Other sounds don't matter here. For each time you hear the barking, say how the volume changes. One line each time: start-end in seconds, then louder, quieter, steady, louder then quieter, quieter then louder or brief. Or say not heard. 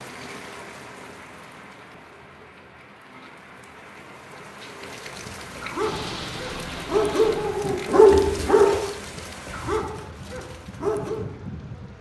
4.9-11.3 louder then quieter.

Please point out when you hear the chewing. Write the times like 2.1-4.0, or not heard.
not heard.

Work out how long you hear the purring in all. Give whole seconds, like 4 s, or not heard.
2 s.